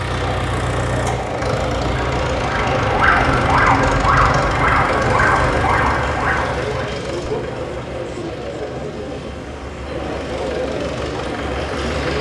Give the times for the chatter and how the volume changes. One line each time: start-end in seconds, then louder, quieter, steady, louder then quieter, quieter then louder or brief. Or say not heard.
0.2-12.1 steady.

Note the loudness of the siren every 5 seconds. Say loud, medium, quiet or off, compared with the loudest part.
loud, loud, off.